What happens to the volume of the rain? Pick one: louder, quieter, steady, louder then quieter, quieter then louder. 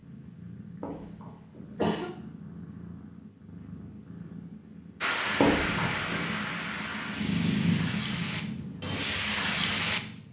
quieter then louder.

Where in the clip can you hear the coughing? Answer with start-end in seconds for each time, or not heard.
0.8-2.1, 5.4-6.2.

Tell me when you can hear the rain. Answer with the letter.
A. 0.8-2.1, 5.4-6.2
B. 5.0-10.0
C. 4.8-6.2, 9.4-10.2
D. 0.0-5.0
B.